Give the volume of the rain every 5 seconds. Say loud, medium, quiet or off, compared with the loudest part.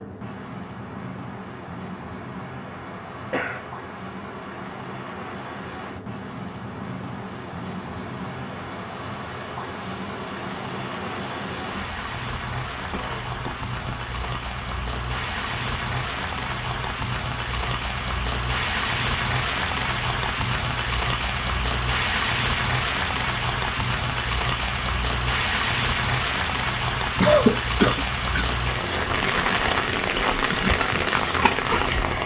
quiet, medium, medium, loud, loud, loud, loud.